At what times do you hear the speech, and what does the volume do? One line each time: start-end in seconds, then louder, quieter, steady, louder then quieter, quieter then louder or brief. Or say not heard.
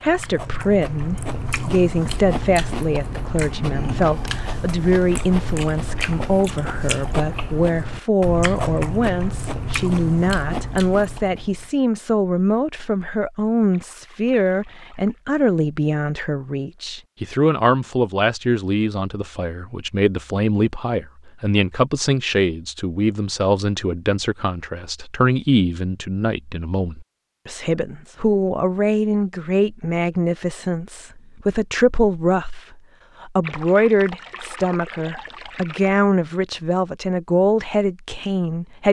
0.0-38.8 steady.